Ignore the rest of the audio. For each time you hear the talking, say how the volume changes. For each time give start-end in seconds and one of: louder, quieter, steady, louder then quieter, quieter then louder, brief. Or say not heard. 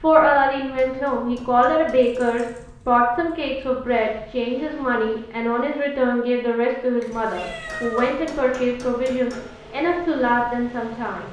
0.0-11.2 steady.